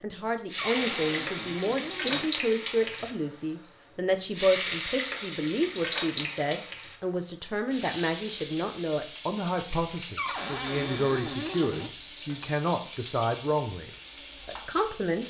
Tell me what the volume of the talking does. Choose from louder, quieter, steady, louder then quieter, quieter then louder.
steady.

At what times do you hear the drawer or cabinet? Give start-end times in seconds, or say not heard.
0.6-2.3, 10.2-11.9.